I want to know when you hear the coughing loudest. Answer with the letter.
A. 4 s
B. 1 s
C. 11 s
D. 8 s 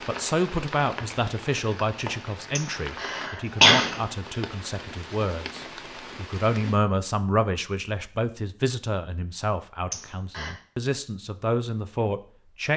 A.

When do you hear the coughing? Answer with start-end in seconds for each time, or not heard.
2.5-4.0, 9.9-10.5.